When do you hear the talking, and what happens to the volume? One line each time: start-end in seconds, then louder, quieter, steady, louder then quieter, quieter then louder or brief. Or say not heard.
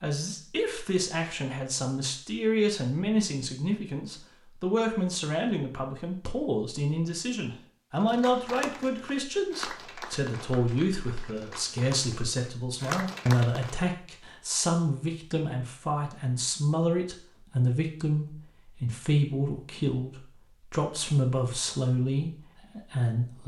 0.0-23.4 steady.